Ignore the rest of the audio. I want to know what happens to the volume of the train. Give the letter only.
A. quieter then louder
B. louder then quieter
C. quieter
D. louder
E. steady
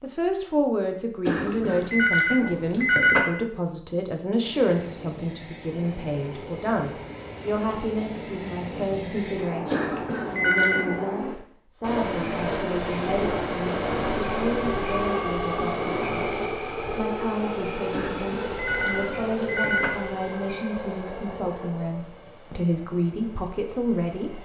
B.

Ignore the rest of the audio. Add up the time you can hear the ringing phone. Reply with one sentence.
The ringing phone can be heard for 5 seconds in total.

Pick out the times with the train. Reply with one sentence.
You can hear the train from 4.4 to 24.4 s.